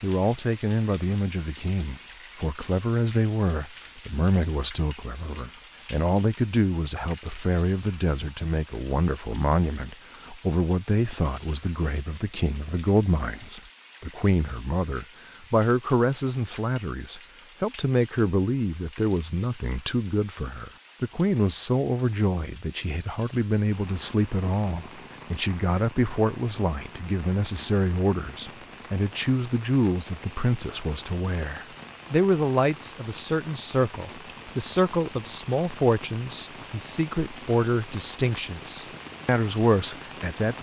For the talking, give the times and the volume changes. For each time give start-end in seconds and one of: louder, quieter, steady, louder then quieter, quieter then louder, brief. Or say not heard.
0.0-40.5 steady.